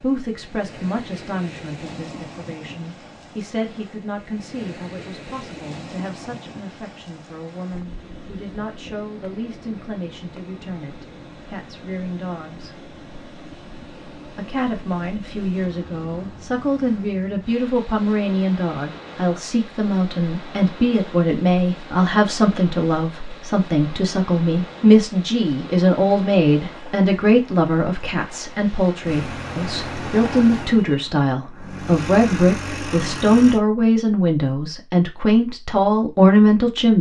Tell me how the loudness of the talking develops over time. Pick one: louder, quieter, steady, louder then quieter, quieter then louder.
louder.